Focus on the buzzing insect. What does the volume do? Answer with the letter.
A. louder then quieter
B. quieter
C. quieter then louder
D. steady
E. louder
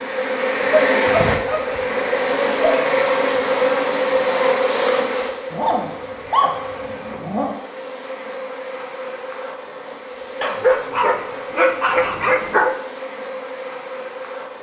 B.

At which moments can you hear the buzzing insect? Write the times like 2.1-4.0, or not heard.
0.0-14.5.